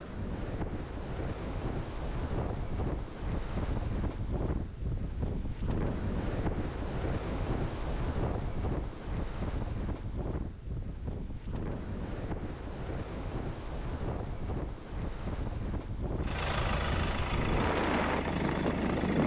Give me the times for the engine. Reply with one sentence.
The engine can be heard from 16.2 to 19.2 s.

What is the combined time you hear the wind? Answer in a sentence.
You can hear the wind for 19 seconds altogether.